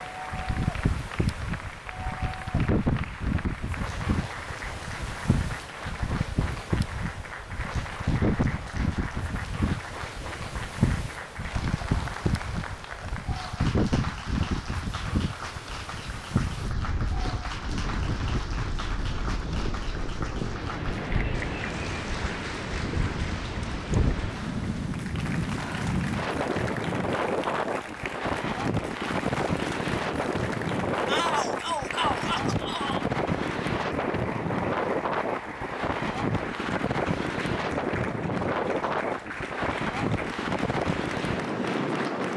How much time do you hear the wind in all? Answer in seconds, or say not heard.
42 s.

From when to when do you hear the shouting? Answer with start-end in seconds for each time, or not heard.
31.1-33.0.